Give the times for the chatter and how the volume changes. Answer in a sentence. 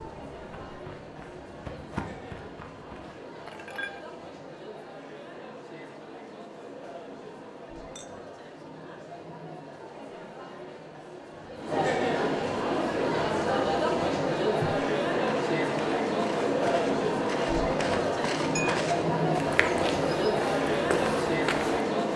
You can hear the chatter from 0.0 to 22.1 s, getting louder.